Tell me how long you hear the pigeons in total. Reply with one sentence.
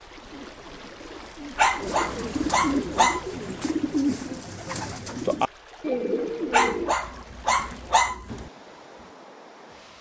The pigeons can be heard for 7 seconds in total.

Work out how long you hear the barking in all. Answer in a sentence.
The barking can be heard for 4 seconds in total.